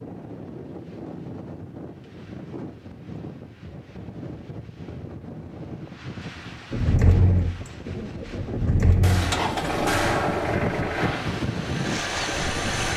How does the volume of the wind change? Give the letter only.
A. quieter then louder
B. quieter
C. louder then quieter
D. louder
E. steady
D.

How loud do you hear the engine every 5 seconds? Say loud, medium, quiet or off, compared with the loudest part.
off, loud, loud.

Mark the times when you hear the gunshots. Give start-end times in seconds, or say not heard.
9.0-10.5.